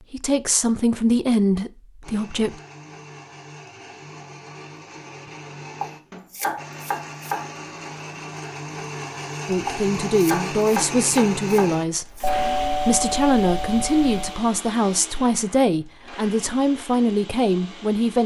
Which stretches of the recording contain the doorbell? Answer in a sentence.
The doorbell can be heard from 12.2 to 14.4 s.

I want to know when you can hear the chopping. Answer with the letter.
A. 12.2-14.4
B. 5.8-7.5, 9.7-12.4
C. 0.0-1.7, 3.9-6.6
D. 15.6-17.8
B.